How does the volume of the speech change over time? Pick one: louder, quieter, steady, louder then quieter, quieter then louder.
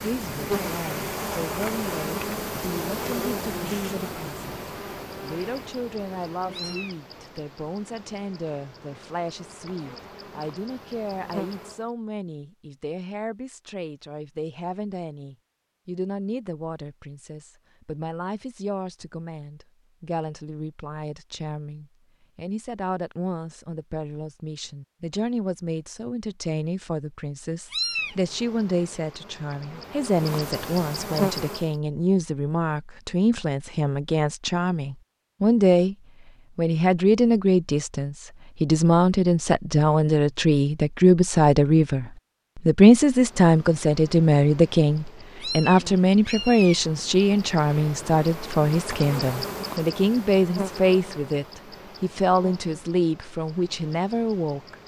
louder.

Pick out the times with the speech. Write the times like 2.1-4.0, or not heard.
0.0-36.0, 36.5-54.8.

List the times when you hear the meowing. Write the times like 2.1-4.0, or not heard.
6.5-7.0, 27.7-28.1, 45.4-46.9.